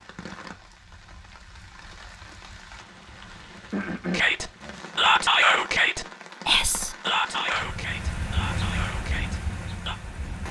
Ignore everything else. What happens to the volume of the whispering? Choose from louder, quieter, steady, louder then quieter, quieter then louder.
quieter.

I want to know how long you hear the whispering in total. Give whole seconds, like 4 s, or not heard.
6 s.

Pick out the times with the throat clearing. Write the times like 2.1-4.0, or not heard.
3.7-4.2.